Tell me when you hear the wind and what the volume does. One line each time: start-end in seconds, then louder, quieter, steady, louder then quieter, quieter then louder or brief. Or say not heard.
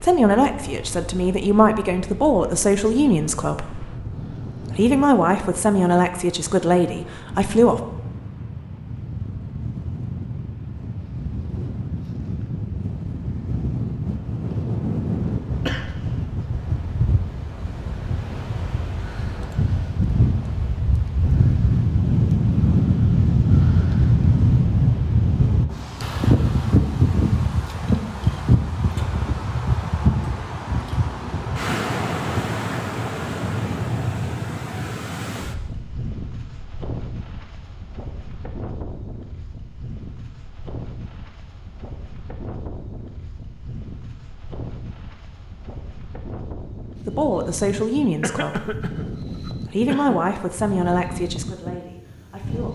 0.0-52.7 louder then quieter.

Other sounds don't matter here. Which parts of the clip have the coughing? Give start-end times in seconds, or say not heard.
15.7-16.1, 48.2-50.2.